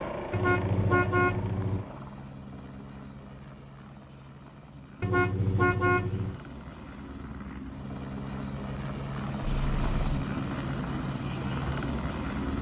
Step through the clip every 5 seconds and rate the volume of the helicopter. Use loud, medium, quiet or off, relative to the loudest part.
medium, medium, loud.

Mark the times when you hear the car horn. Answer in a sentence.
The car horn can be heard from 0.3 to 1.9 s, from 5.0 to 6.4 s and from 9.7 to 10.2 s.